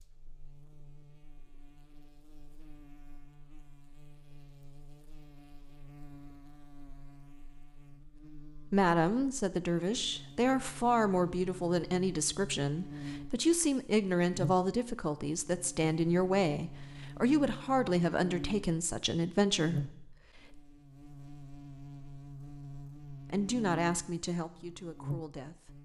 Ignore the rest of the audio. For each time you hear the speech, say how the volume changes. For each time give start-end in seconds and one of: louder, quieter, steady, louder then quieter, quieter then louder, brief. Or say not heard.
8.7-20.6 steady
23.2-25.8 brief.